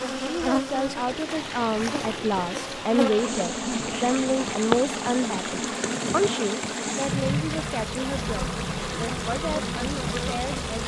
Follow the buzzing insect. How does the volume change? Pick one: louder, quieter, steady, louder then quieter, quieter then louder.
steady.